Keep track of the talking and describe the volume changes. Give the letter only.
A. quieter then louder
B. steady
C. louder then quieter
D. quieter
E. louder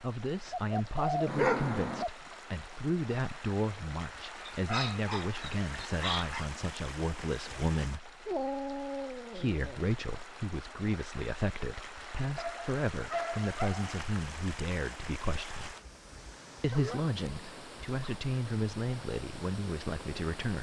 B.